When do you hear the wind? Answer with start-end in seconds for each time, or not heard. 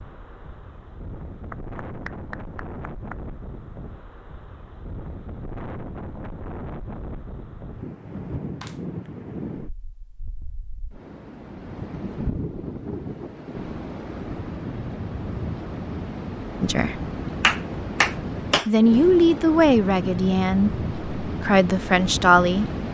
0.0-22.8.